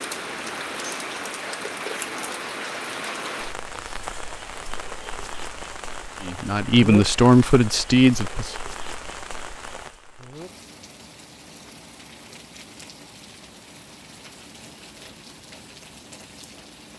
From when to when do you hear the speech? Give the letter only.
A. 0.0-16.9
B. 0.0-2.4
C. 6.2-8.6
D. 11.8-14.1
C.